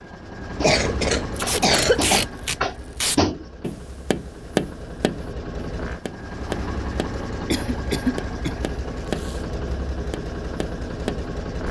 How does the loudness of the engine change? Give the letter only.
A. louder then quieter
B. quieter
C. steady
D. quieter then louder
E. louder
D.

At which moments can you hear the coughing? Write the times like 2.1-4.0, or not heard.
0.6-2.2, 7.5-8.6.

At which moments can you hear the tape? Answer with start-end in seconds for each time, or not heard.
1.4-3.2, 9.0-9.5.